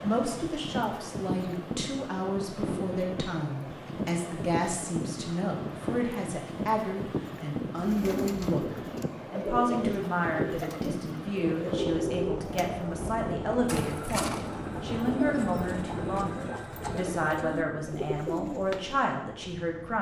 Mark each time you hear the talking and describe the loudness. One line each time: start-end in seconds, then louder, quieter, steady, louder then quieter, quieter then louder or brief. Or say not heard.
0.0-19.9 steady.